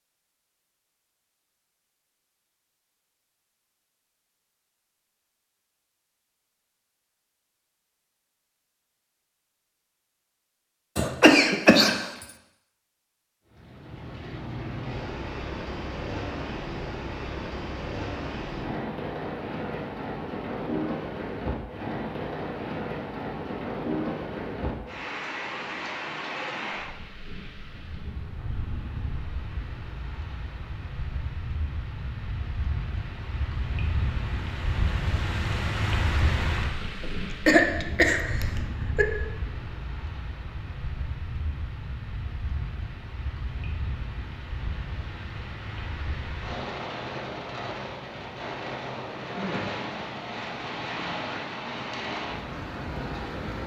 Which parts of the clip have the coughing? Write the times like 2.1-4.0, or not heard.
10.9-12.0, 37.0-39.0.